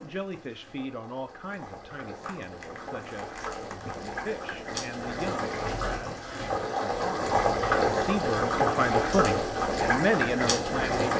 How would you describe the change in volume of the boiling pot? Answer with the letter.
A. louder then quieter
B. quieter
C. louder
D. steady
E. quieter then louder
C.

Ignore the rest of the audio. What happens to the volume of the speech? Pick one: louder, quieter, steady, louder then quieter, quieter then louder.
louder.